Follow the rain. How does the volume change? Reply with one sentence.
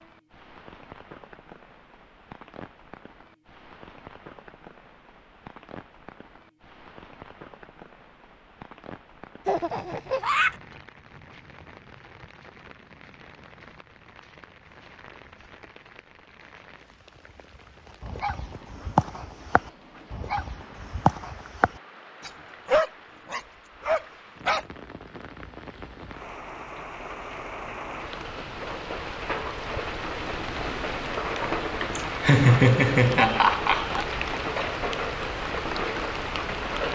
The volume of the rain goes up.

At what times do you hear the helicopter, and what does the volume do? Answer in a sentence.
You can't hear the helicopter here.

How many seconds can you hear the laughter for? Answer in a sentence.
You can hear the laughter for 3 seconds altogether.